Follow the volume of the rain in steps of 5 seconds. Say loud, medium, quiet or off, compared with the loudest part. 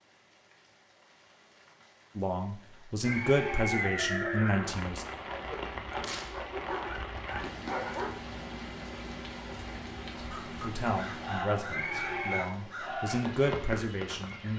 medium, loud, loud.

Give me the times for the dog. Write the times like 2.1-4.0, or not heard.
5.2-8.2.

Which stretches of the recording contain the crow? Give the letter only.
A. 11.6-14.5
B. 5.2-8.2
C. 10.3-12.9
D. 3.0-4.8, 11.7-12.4
C.